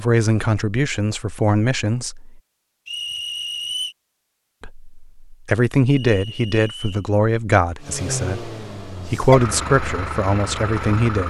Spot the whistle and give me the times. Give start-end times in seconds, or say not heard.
2.9-4.0, 5.8-7.0.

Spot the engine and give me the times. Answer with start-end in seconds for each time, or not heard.
7.8-11.2.